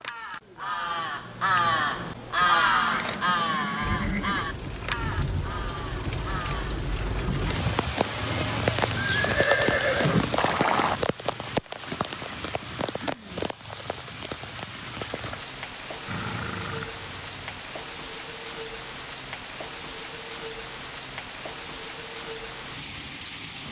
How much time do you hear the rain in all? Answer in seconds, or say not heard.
20 s.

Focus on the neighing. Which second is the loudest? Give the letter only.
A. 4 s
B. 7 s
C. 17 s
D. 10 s
D.